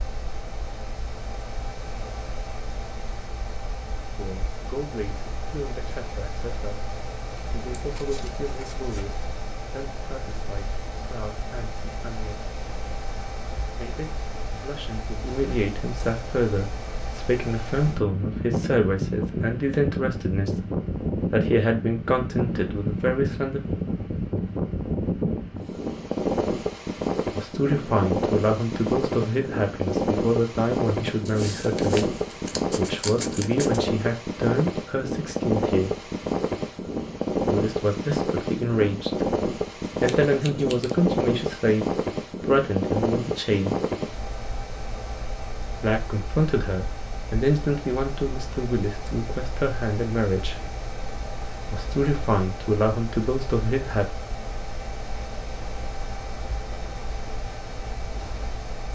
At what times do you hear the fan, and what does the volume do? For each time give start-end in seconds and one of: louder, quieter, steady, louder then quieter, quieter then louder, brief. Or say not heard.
0.0-58.9 louder then quieter.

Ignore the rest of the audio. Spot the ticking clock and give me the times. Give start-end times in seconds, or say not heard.
not heard.